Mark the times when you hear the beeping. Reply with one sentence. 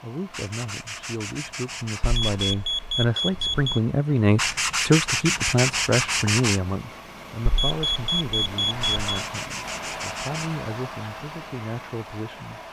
The beeping can be heard from 2.0 to 3.8 s and from 7.5 to 9.2 s.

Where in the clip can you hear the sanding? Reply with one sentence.
The sanding can be heard from 0.3 to 2.5 s, from 4.3 to 6.6 s and from 8.8 to 10.6 s.